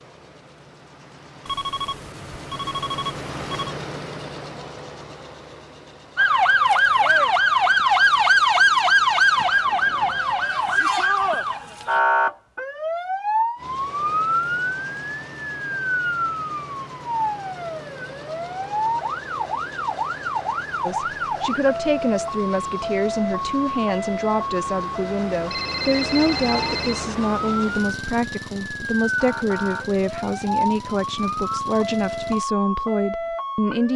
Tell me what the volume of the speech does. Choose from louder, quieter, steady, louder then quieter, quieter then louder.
steady.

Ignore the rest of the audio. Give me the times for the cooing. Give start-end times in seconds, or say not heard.
not heard.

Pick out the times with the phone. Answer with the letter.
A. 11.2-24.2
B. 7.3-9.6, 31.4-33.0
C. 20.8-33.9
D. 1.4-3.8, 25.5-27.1
D.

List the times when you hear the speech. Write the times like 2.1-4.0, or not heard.
20.8-33.9.